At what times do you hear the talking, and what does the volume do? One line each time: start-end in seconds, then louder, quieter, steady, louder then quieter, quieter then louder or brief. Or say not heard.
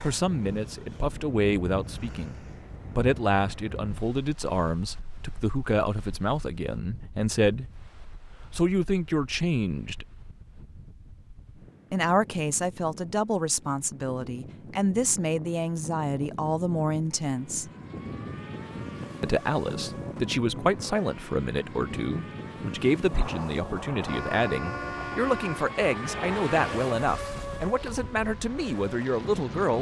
0.0-7.8 steady
8.5-10.1 brief
11.9-17.7 steady
19.2-29.7 steady.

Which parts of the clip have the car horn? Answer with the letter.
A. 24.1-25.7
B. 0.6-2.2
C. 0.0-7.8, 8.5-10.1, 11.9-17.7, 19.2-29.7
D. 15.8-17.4
A.